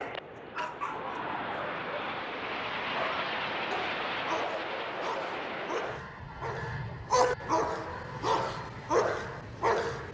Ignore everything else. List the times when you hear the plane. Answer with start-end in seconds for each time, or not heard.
0.0-10.0.